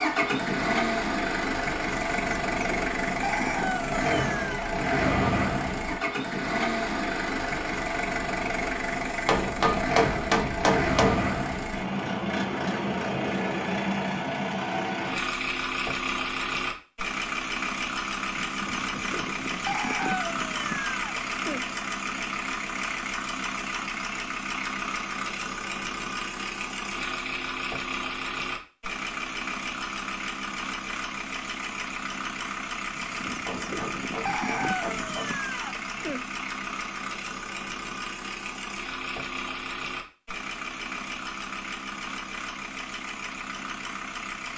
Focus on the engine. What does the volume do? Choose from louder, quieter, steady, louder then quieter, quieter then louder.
quieter.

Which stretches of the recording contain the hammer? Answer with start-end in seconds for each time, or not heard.
9.2-11.2, 33.5-35.2.